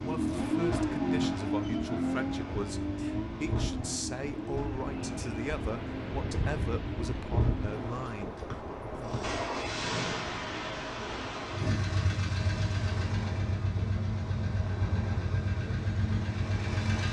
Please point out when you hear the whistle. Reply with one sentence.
The whistle can be heard from 8.5 to 9.2 s.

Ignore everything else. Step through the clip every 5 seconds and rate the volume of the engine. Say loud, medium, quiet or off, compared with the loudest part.
loud, medium, loud, loud.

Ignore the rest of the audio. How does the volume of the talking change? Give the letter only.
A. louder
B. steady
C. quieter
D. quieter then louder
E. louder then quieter
B.